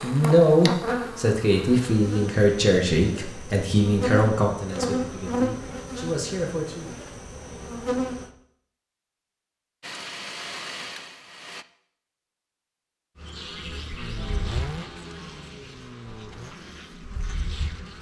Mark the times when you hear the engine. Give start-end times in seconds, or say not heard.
9.8-11.7, 13.9-16.6.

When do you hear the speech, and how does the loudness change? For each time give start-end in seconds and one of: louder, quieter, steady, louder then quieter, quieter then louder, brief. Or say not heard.
0.0-7.0 quieter.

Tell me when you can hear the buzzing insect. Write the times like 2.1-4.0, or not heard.
0.0-8.3, 13.2-17.9.